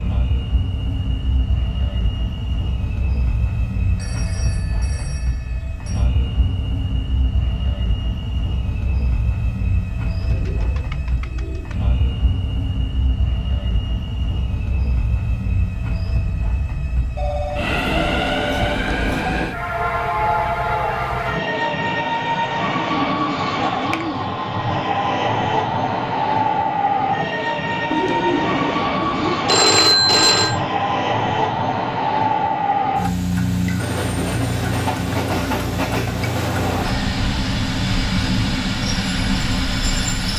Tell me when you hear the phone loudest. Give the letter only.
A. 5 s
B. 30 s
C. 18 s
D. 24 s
B.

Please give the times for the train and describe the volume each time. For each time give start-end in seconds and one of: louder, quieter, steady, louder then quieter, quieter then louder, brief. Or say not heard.
0.0-40.3 louder.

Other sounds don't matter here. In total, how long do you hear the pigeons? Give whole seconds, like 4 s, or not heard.
5 s.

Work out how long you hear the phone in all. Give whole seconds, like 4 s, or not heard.
5 s.